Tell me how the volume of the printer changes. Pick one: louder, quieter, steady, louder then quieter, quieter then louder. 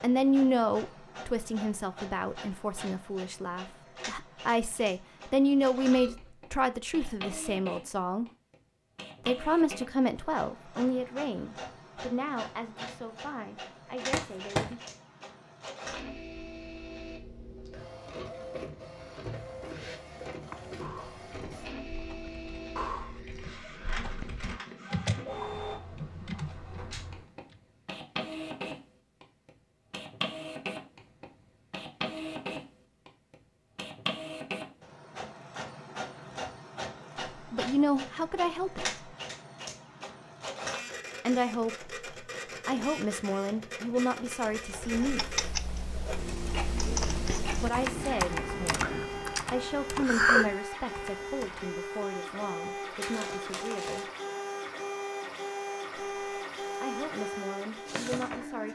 louder.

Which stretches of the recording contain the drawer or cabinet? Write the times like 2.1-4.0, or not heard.
not heard.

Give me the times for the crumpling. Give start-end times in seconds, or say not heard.
14.1-14.8, 53.1-54.0.